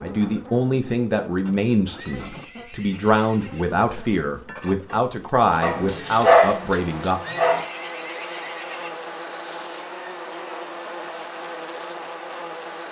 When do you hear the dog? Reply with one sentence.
The dog can be heard from 5.6 to 7.6 s.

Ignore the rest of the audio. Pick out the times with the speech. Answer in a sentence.
You can hear the speech from 0.0 to 7.2 s.